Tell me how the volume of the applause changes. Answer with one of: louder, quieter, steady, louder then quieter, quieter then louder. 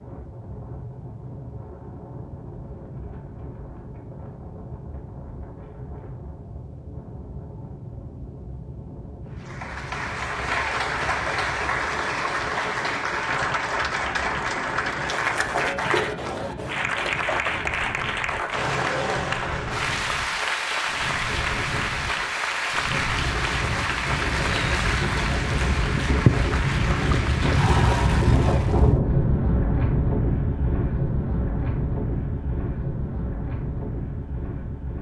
steady.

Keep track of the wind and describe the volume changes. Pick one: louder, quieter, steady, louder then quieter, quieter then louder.
louder.